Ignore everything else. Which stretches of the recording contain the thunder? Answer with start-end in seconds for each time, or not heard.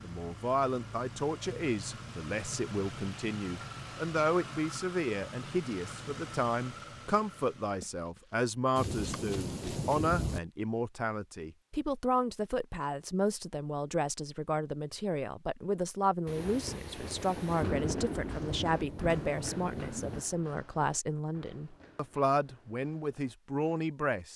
8.8-10.4, 16.2-20.2.